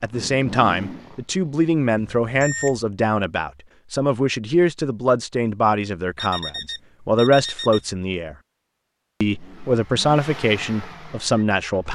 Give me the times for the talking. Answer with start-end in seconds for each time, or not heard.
0.0-8.3, 9.2-11.9.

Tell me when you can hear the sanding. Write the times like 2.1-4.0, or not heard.
not heard.